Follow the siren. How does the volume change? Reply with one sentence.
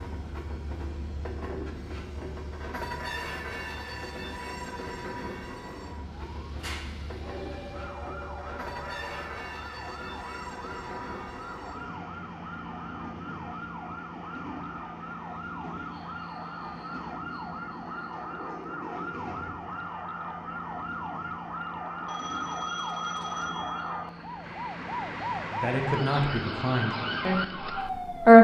The volume of the siren goes up.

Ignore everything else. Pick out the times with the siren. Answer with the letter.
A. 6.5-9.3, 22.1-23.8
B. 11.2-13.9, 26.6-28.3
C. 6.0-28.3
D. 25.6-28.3
C.